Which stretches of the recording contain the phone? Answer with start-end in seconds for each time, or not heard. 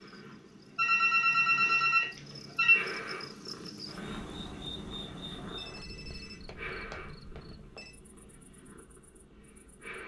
0.8-2.9, 5.5-7.9.